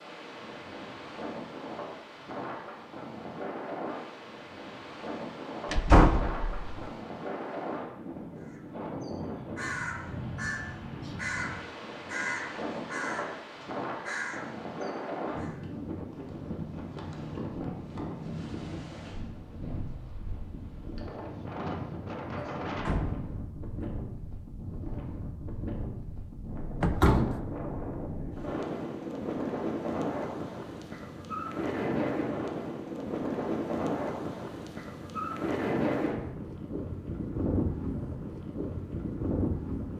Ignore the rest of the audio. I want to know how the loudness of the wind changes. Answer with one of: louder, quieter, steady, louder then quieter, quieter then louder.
louder.